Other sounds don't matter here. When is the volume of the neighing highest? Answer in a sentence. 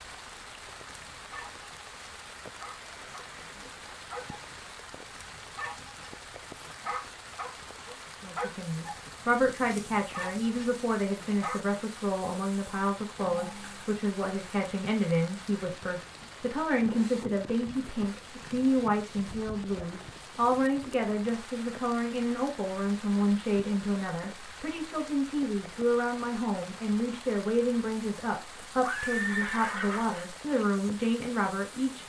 The volume of the neighing peaks at 29 seconds.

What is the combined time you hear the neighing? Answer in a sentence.
You can hear the neighing for 4 seconds altogether.